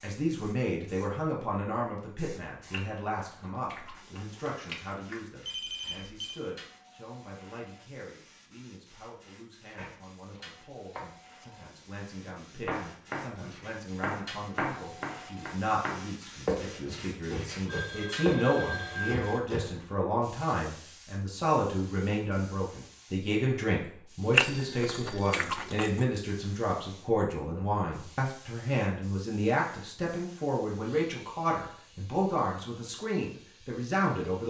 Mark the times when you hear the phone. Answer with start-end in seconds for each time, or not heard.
5.5-6.4, 17.6-19.4, 24.4-25.4.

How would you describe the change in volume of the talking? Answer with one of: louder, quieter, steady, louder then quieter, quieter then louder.
quieter then louder.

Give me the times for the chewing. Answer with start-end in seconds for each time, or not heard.
2.7-5.2, 24.3-26.1.